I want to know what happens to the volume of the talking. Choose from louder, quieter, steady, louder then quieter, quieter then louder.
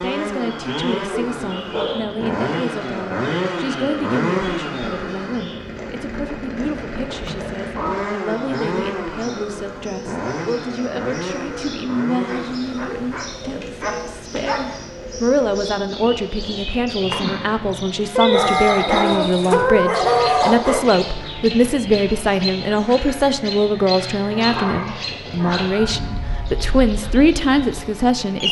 louder.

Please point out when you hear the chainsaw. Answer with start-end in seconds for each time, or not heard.
0.0-28.4.